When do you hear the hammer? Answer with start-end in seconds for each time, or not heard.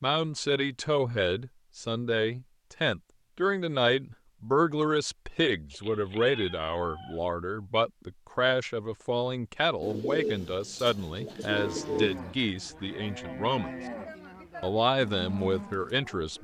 not heard.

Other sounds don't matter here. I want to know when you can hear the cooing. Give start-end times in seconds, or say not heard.
9.8-12.2.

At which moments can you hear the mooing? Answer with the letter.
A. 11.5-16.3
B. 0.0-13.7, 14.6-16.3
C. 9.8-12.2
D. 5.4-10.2
A.